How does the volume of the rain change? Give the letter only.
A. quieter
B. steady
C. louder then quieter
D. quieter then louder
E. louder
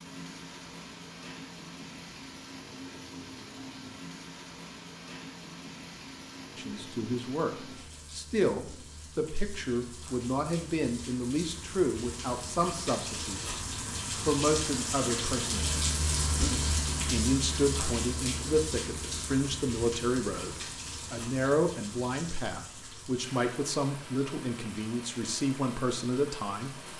C.